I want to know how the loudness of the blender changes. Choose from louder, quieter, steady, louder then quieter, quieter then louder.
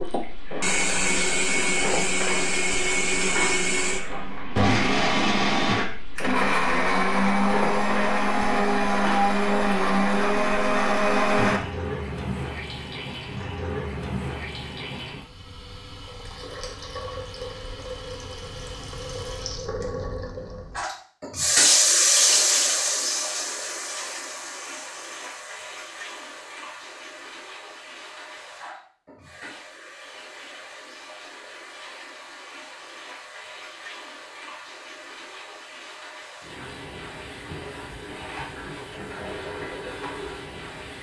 steady.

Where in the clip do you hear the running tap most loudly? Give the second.
22 s.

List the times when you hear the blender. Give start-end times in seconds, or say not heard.
0.0-11.7.